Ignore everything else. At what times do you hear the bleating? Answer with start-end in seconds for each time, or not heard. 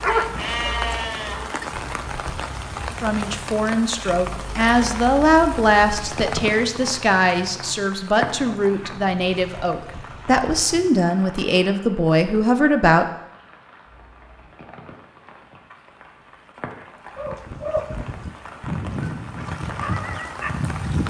0.3-1.4.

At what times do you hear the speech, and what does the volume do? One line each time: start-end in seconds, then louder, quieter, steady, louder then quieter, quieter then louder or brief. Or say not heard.
3.0-13.1 steady.